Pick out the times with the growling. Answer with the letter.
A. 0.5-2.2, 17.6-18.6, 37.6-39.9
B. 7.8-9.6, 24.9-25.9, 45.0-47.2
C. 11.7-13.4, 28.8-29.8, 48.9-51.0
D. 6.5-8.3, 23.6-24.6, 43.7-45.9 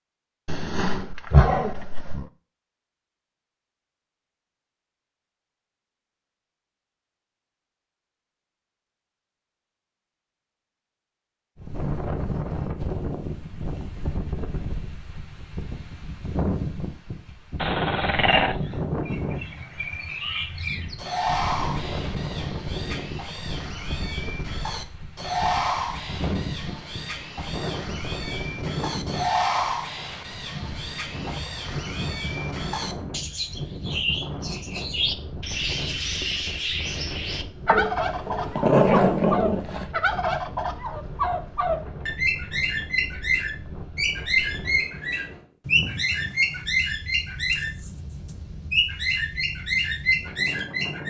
A.